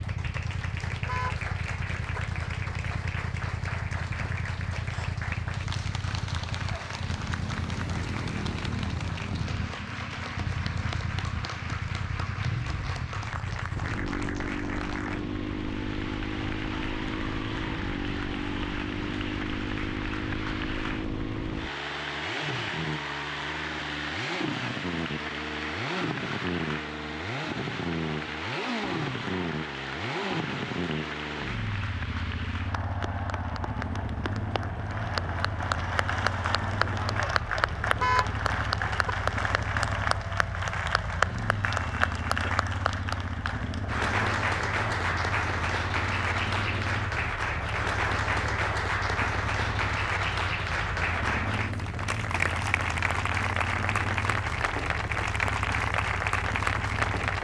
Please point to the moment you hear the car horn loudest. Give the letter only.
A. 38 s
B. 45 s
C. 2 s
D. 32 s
A.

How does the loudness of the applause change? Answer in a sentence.
The volume of the applause goes up.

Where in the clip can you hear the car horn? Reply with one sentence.
The car horn can be heard from 0.9 to 2.2 s and from 37.8 to 39.1 s.